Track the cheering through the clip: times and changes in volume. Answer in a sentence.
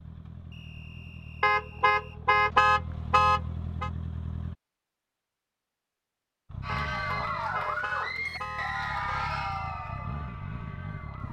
You can hear the cheering from 6.6 to 11.2 s, getting quieter.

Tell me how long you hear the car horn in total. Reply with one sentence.
The car horn can be heard for 5 seconds in total.